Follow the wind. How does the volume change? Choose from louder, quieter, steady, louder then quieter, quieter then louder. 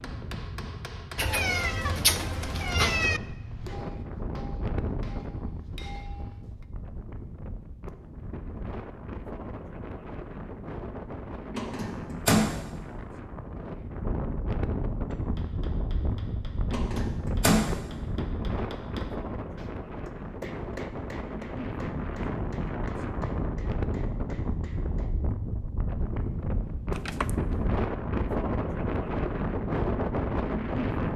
louder.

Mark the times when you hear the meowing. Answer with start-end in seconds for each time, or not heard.
1.1-3.2, 26.9-27.6.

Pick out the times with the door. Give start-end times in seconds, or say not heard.
11.5-12.5, 16.7-17.6.